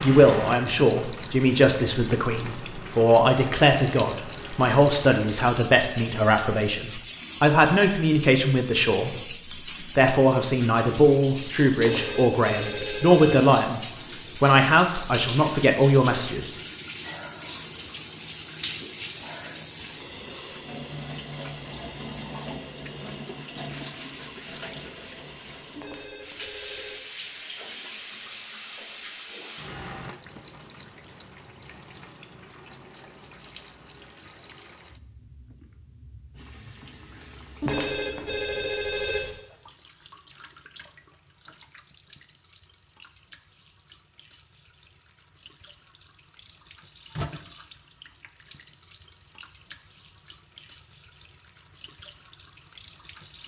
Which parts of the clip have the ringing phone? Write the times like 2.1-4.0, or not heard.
11.8-13.5, 25.8-27.0, 37.6-39.4.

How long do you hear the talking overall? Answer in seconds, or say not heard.
15 s.